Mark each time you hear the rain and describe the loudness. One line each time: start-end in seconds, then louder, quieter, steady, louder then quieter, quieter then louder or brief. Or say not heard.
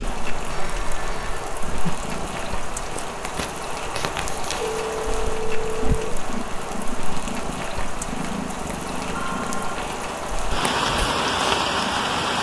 0.0-12.3 louder.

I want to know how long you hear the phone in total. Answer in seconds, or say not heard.
3 s.